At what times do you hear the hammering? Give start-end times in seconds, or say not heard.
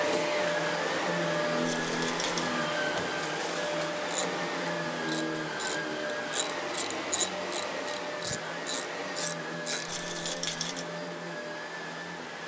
not heard.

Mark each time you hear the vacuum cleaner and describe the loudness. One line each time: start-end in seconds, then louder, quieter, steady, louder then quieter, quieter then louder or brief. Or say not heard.
0.0-12.4 quieter.